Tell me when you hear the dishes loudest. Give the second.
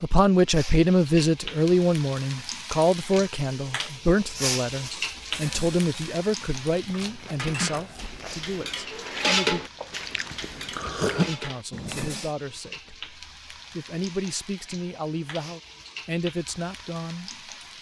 9 s.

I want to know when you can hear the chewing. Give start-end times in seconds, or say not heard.
7.0-12.1.